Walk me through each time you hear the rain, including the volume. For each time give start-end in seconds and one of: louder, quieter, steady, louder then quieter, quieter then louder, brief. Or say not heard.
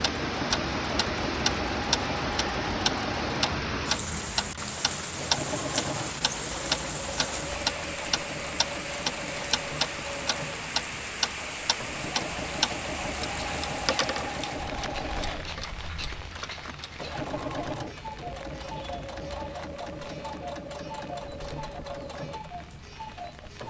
0.0-23.6 quieter.